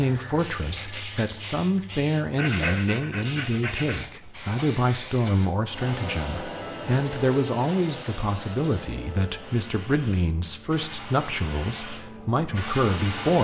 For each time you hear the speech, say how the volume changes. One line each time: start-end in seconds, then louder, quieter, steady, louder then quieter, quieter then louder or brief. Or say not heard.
0.0-13.3 steady.